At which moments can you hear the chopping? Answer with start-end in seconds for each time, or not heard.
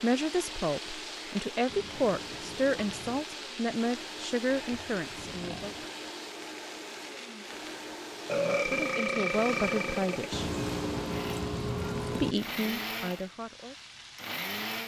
not heard.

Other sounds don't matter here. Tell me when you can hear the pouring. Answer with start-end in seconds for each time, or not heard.
1.6-3.2, 5.2-5.9, 10.3-12.3.